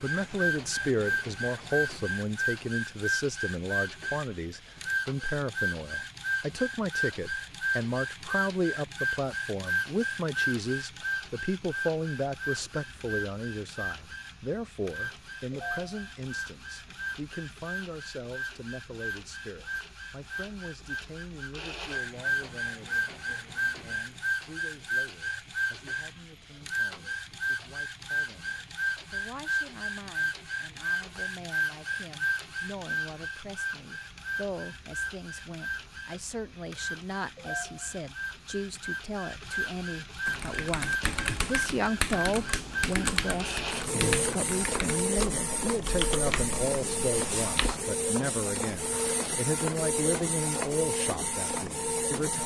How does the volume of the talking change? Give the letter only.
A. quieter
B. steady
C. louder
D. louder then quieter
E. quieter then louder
E.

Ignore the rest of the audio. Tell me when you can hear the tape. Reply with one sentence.
The tape can't be heard in this clip.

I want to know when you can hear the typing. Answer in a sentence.
The typing can be heard from 40.2 to 47.8 s.